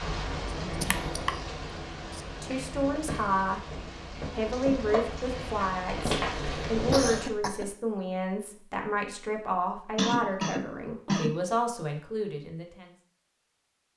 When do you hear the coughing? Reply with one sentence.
The coughing can be heard from 0.8 to 1.3 s, from 6.0 to 7.8 s and from 9.9 to 11.4 s.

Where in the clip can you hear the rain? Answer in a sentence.
You can hear the rain from 0.0 to 7.3 s.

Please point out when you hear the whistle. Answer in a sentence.
You can't hear the whistle here.